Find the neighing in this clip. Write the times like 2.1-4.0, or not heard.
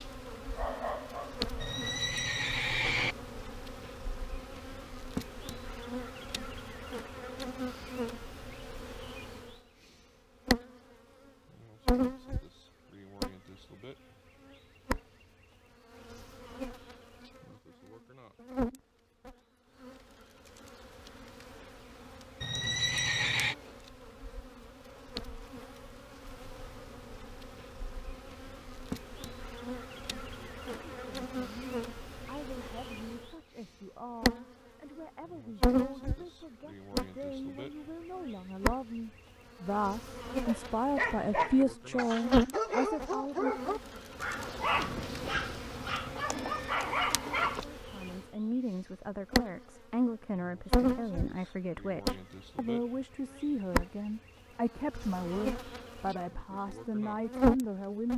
1.6-3.1, 22.4-23.6, 44.7-46.8.